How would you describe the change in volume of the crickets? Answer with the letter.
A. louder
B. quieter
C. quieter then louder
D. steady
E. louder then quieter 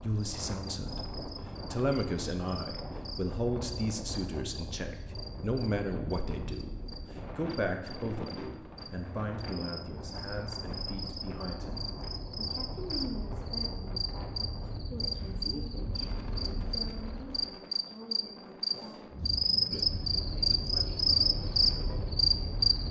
A.